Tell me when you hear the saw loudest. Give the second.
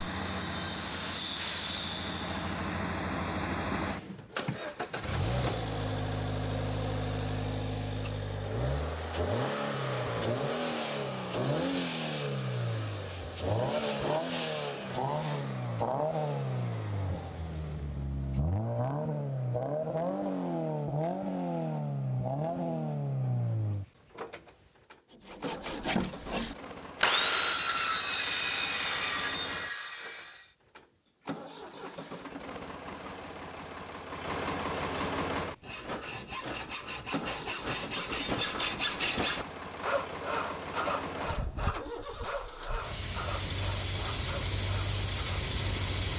27 s.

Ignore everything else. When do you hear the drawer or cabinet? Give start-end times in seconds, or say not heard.
3.8-5.3.